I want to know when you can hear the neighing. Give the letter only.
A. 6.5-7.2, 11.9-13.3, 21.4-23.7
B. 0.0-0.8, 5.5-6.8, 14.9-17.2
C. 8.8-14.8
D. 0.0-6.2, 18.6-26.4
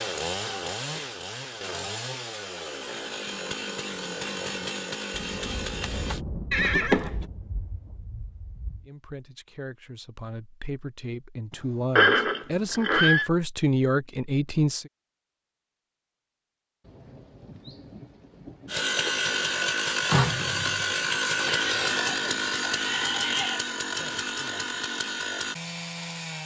A.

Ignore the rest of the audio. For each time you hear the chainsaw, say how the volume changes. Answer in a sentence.
You can hear the chainsaw from 0.0 to 6.2 s, at a steady volume; and from 18.6 to 26.4 s, getting quieter.